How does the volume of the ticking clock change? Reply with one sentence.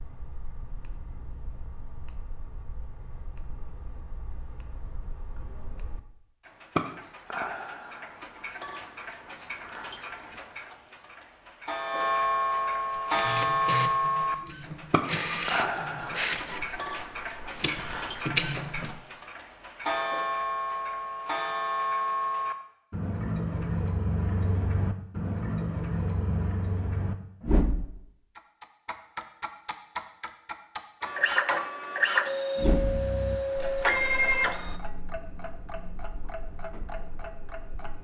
The volume of the ticking clock goes up, then down.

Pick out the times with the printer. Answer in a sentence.
You can hear the printer from 12.9 to 19.0 s and from 31.0 to 34.8 s.